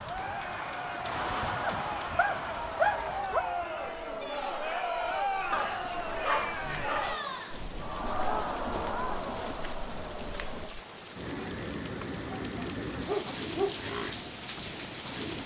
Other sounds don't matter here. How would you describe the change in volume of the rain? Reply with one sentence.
The volume of the rain goes down, then up.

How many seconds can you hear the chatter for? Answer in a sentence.
You can hear the chatter for 11 seconds altogether.